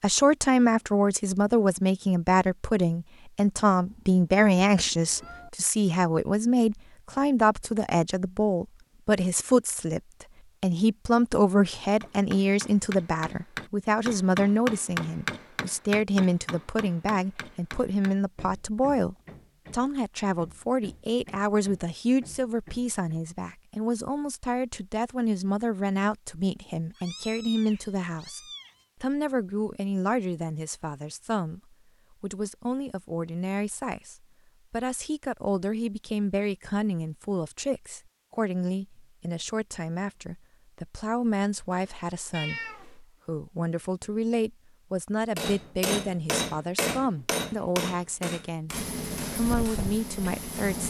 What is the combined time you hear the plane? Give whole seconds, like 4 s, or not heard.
2 s.